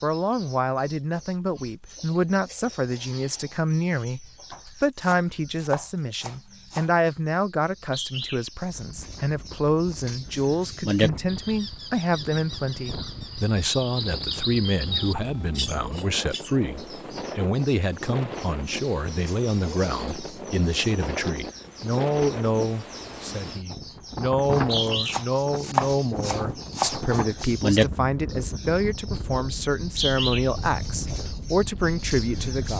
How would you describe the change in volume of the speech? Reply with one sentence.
The loudness of the speech stays about the same.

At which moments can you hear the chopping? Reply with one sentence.
You can hear the chopping from 4.5 to 6.9 s and from 24.6 to 26.9 s.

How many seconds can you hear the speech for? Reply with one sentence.
The speech can be heard for 33 seconds in total.